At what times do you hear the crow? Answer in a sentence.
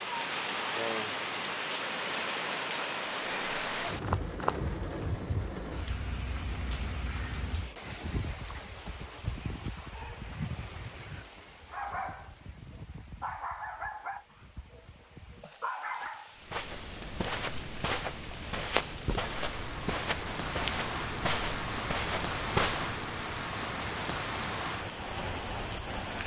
The crow can't be heard in this clip.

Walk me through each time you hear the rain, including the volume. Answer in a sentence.
You can hear the rain from 0.0 to 26.2 s, getting quieter then louder.